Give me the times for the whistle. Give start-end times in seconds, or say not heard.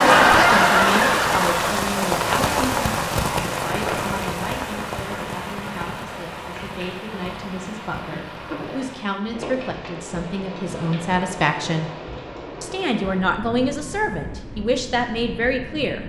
not heard.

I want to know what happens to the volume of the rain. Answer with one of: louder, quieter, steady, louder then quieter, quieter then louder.
quieter.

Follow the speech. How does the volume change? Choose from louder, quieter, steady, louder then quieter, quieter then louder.
quieter then louder.